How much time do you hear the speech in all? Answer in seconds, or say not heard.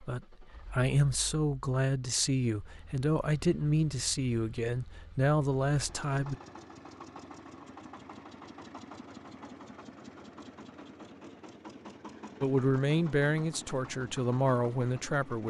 9 s.